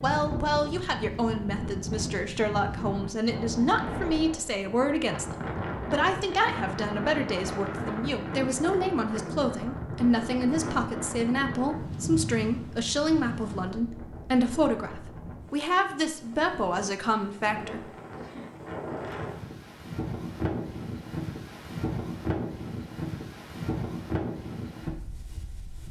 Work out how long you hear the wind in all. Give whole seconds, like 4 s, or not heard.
26 s.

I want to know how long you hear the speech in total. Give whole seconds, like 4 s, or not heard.
18 s.